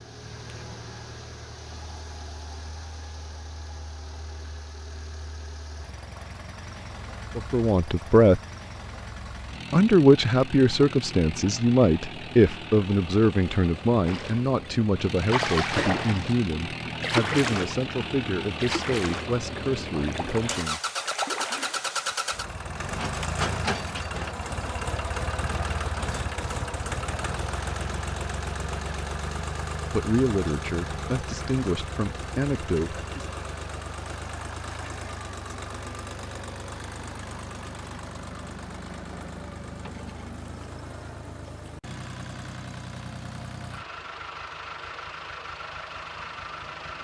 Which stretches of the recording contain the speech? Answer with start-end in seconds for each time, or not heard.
7.3-8.4, 9.7-20.8, 29.9-33.2.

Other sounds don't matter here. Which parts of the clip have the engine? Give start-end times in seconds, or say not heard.
0.0-46.9.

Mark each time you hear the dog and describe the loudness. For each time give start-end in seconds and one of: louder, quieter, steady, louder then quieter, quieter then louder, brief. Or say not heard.
not heard.